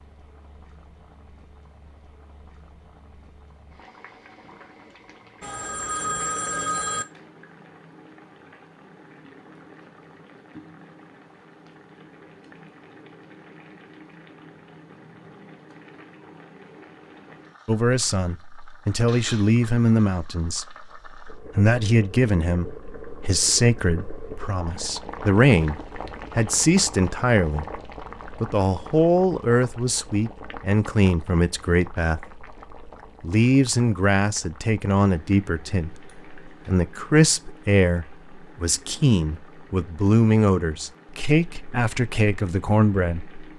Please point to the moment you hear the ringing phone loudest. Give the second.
7 s.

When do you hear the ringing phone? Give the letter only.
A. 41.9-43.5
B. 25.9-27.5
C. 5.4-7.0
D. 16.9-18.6
C.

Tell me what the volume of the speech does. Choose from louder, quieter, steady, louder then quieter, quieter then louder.
steady.